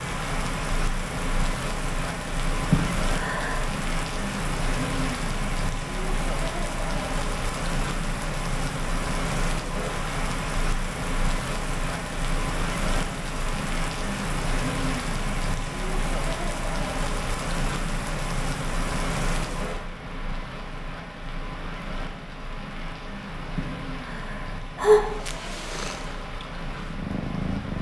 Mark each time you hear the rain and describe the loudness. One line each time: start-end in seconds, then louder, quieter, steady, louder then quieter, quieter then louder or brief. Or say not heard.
0.0-27.7 quieter.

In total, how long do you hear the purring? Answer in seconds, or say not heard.
3 s.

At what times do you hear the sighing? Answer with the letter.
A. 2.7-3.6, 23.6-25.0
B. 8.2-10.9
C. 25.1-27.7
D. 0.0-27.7
A.